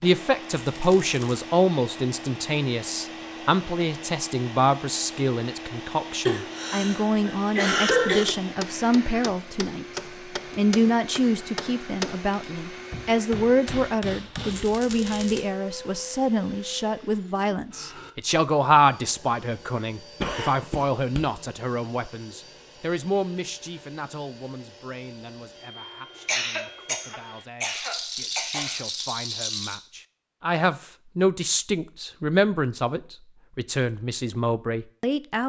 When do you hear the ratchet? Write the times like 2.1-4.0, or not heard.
not heard.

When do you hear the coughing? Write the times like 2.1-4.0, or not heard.
6.2-8.2, 20.2-21.2, 26.2-28.8.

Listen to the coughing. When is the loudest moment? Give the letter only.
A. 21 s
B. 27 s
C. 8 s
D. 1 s
C.